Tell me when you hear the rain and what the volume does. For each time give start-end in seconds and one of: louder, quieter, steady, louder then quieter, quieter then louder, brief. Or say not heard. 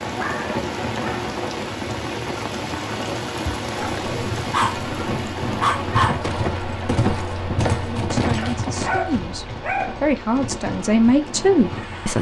0.0-12.1 quieter.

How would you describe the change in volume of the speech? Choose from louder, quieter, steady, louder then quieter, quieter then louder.
louder.